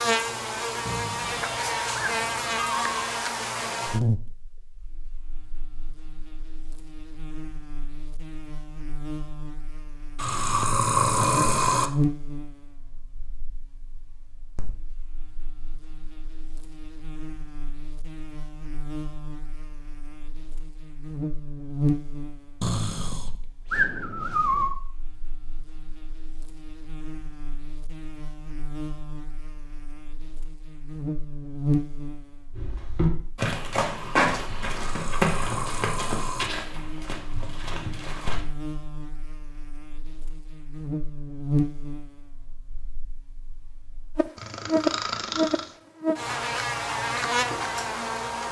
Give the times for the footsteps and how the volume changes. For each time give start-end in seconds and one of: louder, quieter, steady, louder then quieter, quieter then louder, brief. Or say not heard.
32.5-38.5 quieter.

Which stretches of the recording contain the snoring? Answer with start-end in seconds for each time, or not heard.
0.8-3.0, 10.2-11.9, 22.6-24.8, 34.8-36.5, 44.4-45.6.